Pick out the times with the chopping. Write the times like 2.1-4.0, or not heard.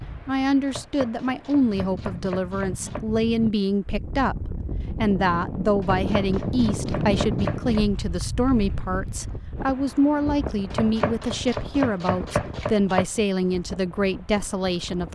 0.7-3.0, 5.8-7.8, 10.7-13.1.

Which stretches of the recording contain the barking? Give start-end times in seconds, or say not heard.
not heard.